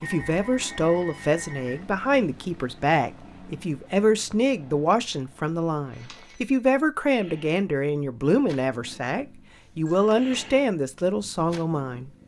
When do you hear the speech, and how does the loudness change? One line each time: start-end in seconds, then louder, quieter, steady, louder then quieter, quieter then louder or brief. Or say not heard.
0.0-12.1 steady.